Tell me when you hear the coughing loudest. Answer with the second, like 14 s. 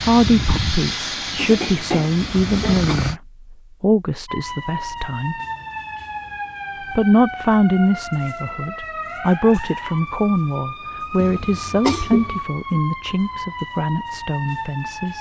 12 s.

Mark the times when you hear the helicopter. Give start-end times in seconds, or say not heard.
0.0-3.1.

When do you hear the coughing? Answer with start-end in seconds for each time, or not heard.
1.4-3.0, 11.2-12.4.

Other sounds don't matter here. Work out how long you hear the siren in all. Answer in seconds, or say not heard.
11 s.